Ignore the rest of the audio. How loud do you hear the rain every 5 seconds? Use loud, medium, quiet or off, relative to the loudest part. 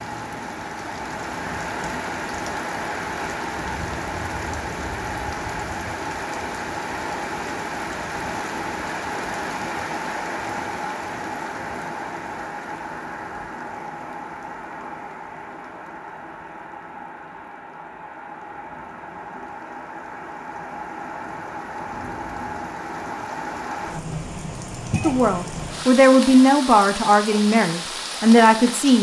loud, loud, loud, medium, loud, loud.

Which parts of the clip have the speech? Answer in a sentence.
The speech can be heard from 25.0 to 28.9 s.